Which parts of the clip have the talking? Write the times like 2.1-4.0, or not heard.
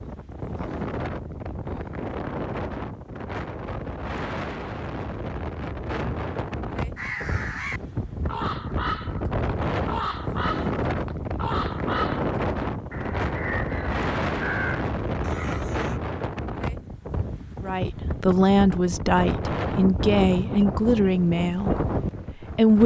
17.6-22.8.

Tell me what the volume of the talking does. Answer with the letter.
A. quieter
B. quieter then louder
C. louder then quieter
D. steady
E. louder
A.